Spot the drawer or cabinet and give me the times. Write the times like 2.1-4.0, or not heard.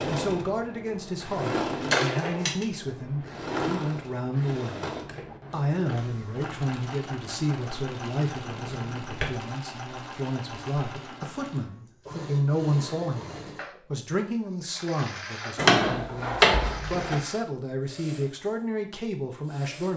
1.9-2.6, 8.5-9.3, 15.6-17.1.